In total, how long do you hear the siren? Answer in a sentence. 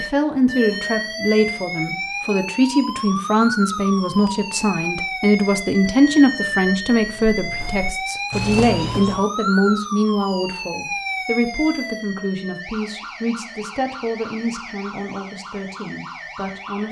You can hear the siren for 17 seconds altogether.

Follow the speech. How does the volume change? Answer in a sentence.
The volume of the speech goes down.